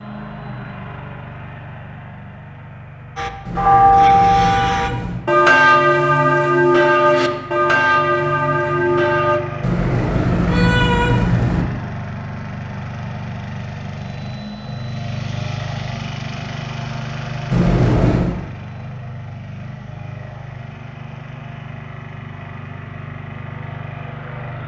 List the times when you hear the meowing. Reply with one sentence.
You can hear the meowing from 3.5 to 5.2 s, from 9.6 to 11.7 s and from 17.5 to 18.4 s.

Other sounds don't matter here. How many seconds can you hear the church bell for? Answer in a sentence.
The church bell can be heard for 6 seconds in total.